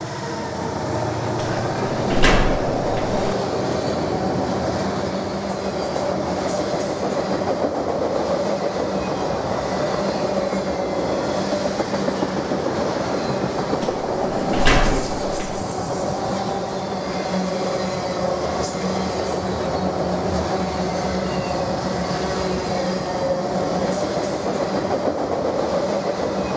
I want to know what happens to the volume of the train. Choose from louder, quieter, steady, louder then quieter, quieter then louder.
steady.